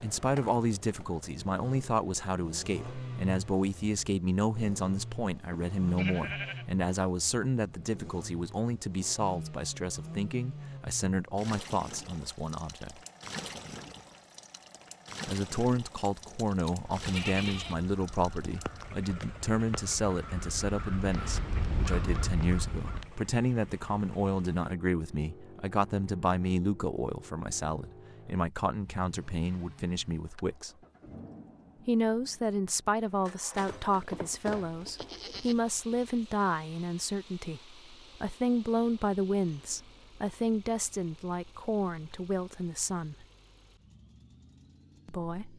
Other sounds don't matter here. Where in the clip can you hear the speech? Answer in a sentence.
The speech can be heard from 0.0 to 13.0 s, from 15.2 to 30.7 s, from 31.9 to 43.2 s and from 45.0 to 45.5 s.